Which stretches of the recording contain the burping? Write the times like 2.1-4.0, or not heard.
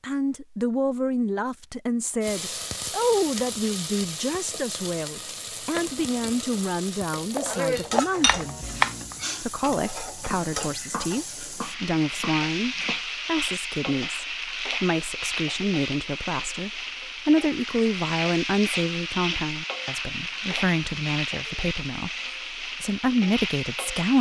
not heard.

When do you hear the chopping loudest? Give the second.
9 s.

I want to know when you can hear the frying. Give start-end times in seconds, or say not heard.
2.2-24.1.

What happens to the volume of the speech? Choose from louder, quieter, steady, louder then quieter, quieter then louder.
steady.